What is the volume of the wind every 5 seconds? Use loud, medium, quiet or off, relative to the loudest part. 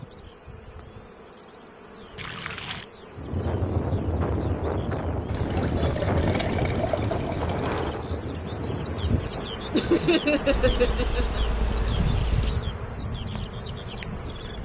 loud, loud, medium.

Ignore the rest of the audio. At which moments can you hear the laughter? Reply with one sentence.
You can hear the laughter from 9.7 to 11.4 s.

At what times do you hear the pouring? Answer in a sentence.
You can hear the pouring from 2.1 to 2.9 s, from 5.2 to 8.1 s and from 10.5 to 12.5 s.